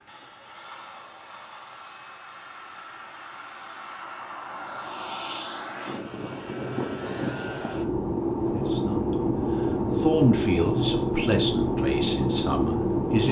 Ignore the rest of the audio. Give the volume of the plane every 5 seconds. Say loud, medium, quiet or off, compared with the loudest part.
quiet, loud, loud.